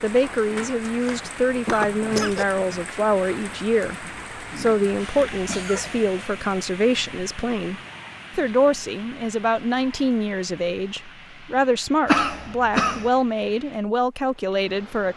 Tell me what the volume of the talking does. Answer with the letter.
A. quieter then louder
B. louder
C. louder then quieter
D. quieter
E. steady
E.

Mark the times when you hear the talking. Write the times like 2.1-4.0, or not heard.
0.0-4.0, 4.5-15.1.